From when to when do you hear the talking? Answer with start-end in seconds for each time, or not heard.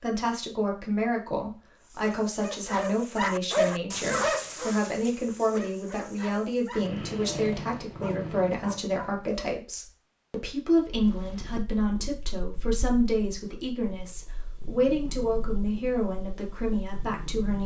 0.0-17.6.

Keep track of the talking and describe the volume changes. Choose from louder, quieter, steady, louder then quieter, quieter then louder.
steady.